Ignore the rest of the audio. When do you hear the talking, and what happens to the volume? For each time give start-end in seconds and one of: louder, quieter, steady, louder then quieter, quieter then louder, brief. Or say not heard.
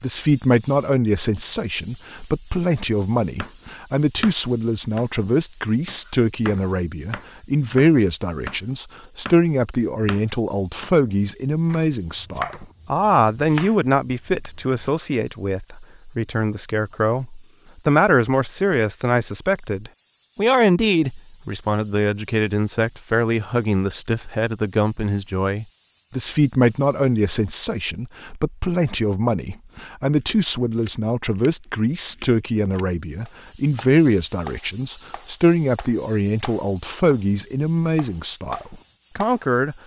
0.0-39.8 steady.